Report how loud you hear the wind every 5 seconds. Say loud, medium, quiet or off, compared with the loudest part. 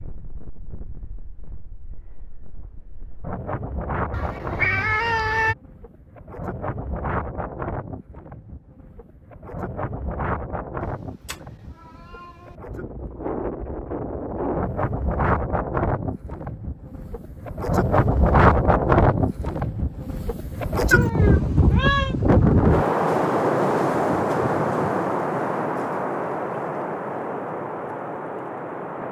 quiet, quiet, medium, loud, loud, medium.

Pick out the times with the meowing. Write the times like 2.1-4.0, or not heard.
4.1-5.5, 11.2-12.3, 20.9-22.1.